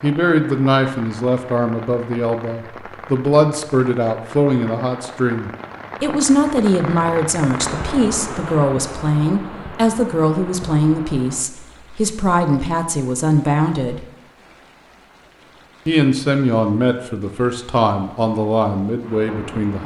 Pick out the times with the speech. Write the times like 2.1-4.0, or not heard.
0.0-14.1, 15.8-19.8.